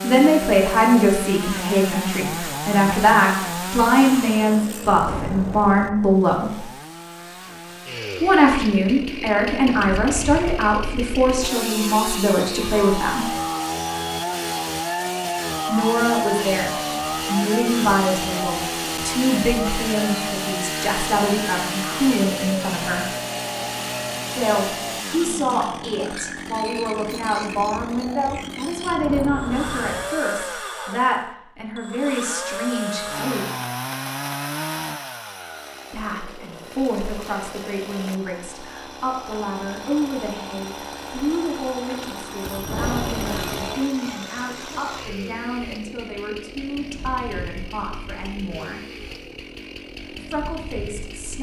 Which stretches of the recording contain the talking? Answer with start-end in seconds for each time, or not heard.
0.0-6.7, 8.2-13.3, 15.7-23.1, 24.4-33.5, 35.9-48.8, 50.1-51.3.